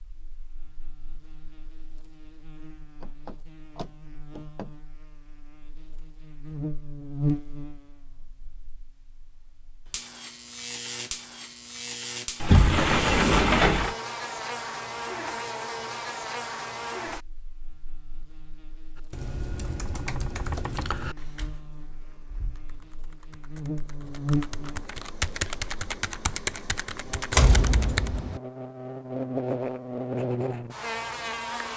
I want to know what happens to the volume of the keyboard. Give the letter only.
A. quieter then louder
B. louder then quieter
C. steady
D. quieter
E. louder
A.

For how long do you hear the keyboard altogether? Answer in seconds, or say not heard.
9 s.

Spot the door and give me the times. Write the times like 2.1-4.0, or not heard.
3.0-4.7, 12.4-13.9, 27.3-28.4.